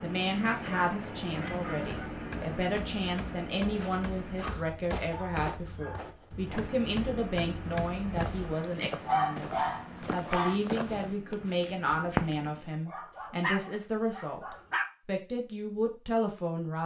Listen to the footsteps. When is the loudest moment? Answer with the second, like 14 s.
12 s.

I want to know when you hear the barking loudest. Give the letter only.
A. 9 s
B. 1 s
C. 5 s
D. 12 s
A.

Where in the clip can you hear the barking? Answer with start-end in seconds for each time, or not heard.
0.5-2.0, 4.4-6.0, 8.6-10.6, 12.8-14.8.